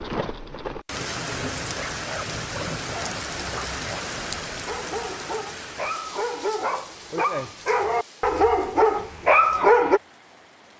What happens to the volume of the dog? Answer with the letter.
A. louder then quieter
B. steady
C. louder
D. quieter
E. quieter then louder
C.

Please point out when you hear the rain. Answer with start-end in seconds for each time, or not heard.
0.0-10.7.